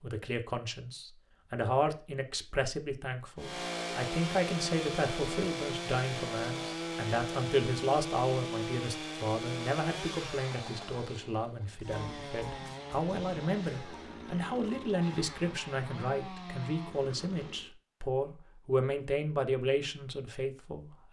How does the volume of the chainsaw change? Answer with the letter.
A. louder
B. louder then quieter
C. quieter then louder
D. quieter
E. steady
D.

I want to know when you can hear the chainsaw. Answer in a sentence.
You can hear the chainsaw from 3.4 to 17.8 s.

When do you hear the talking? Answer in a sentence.
The talking can be heard from 0.0 to 21.0 s.